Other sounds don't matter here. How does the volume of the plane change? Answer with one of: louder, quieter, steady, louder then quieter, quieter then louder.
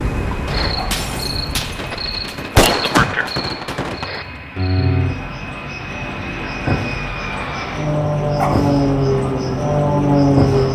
louder.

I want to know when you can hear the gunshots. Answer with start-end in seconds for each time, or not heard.
0.5-4.2.